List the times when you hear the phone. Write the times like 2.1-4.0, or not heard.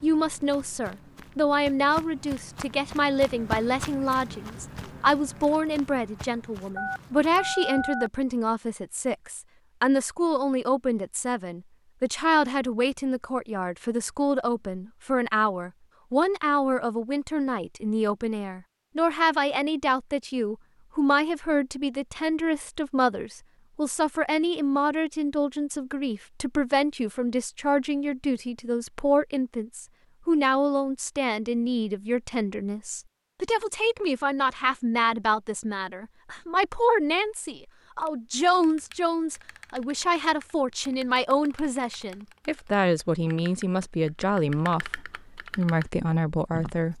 6.8-8.1.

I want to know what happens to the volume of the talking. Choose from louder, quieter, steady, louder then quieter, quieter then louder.
steady.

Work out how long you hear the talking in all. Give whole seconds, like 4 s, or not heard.
47 s.